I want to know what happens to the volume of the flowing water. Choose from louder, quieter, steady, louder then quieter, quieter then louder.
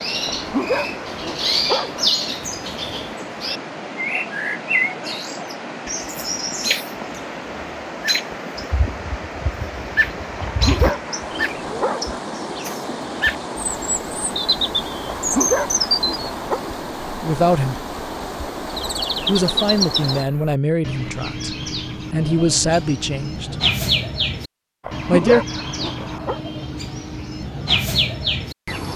steady.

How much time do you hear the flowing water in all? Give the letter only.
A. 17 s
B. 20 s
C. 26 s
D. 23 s
B.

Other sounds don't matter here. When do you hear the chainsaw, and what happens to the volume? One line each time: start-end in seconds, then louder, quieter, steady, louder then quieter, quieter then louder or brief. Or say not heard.
not heard.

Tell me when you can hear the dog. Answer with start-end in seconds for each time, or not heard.
0.3-2.1, 10.4-12.2, 15.2-16.6, 24.8-26.4.